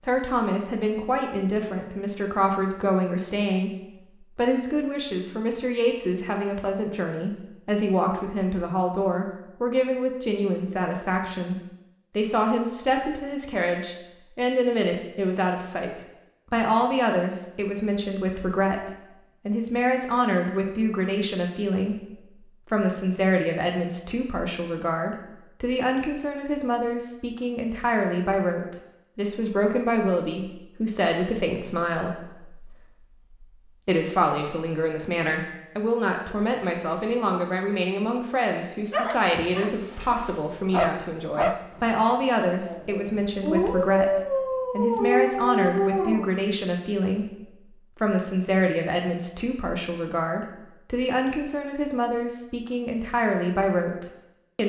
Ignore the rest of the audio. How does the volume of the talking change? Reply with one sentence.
The loudness of the talking stays about the same.